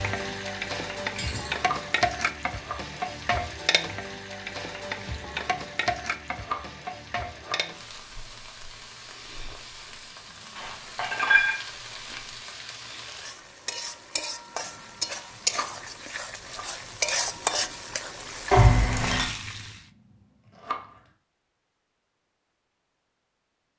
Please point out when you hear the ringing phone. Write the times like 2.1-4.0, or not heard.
not heard.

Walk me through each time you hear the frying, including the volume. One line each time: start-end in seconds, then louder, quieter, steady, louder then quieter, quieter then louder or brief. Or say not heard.
0.0-19.8 quieter then louder.